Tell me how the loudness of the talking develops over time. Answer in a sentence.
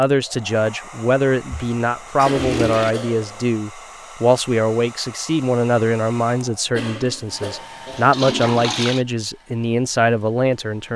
The volume of the talking stays about the same.